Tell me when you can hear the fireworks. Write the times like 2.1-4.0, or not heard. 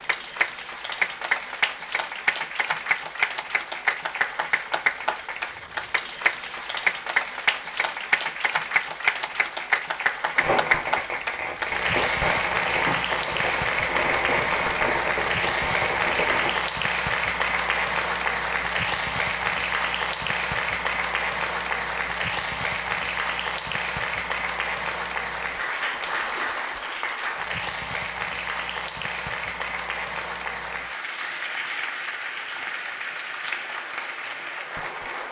10.3-16.6.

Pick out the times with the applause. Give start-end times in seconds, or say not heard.
0.0-35.2.